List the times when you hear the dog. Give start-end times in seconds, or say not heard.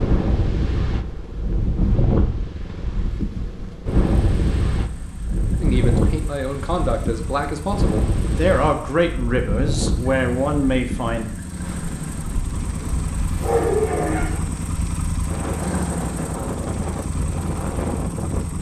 12.8-14.4.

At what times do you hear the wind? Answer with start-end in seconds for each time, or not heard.
0.0-18.5.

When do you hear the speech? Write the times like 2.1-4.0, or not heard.
5.6-11.2.